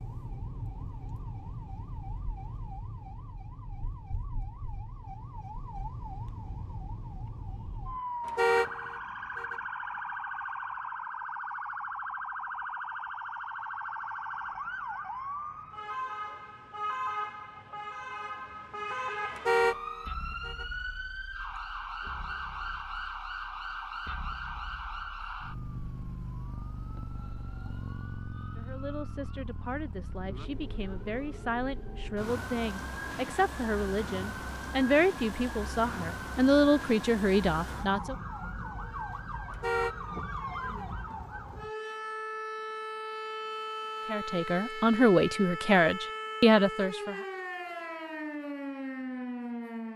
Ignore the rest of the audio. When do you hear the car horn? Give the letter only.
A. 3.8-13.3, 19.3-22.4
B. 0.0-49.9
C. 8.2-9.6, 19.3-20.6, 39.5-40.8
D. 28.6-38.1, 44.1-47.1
C.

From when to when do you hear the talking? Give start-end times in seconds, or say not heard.
28.6-38.1, 44.1-47.1.